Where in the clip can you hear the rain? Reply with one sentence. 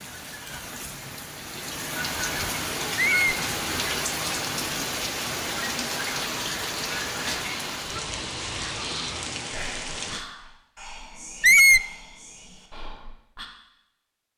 The rain can be heard from 0.0 to 10.2 s.